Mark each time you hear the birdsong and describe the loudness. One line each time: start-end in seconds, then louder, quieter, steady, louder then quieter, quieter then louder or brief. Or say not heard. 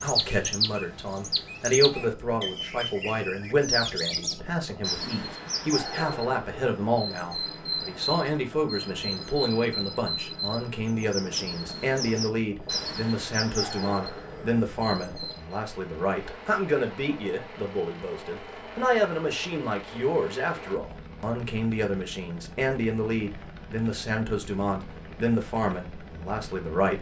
0.0-15.6 steady.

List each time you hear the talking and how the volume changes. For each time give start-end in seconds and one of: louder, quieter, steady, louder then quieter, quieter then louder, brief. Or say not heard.
0.0-26.9 steady.